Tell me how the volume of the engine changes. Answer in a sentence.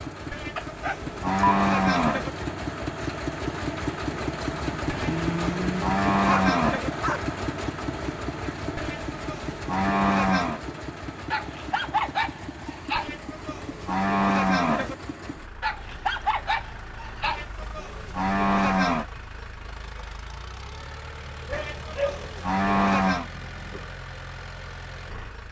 The volume of the engine goes down.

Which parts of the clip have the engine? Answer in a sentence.
The engine can be heard from 0.0 to 25.4 s.